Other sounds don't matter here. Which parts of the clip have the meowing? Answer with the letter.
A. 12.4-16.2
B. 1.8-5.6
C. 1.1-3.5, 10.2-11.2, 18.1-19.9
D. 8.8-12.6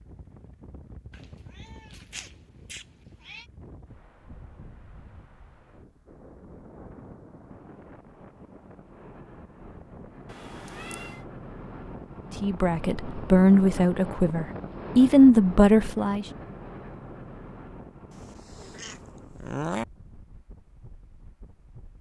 C.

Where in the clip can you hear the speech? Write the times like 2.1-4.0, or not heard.
12.4-16.2.